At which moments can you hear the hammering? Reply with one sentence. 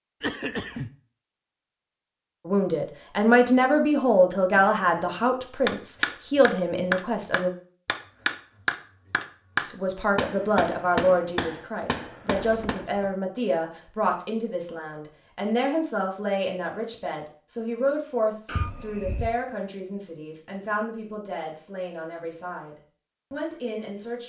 The hammering can be heard from 4.5 to 12.8 s.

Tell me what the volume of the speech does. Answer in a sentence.
The loudness of the speech goes down.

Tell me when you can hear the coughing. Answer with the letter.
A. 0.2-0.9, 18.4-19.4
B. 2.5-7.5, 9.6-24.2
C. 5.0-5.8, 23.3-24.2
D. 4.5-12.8
A.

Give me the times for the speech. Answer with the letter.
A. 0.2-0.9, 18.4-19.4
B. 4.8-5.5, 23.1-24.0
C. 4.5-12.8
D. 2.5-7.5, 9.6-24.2
D.